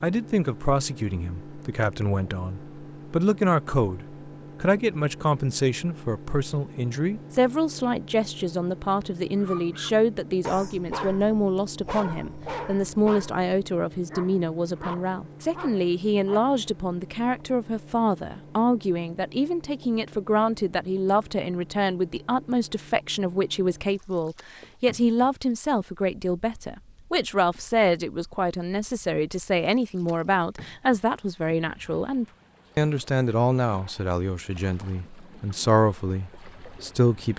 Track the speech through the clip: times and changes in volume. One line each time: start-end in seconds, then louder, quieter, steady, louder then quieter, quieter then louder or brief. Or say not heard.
0.0-37.3 steady.